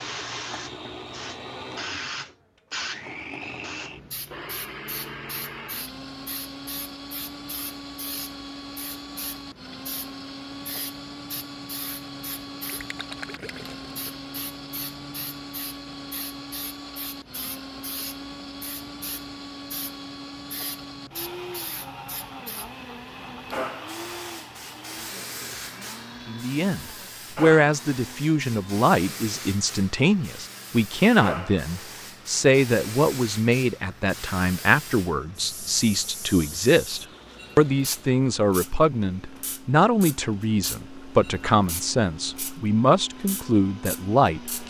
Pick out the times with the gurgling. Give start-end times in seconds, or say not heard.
12.7-14.4.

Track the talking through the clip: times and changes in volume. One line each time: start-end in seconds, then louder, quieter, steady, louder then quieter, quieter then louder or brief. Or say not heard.
26.2-44.6 steady.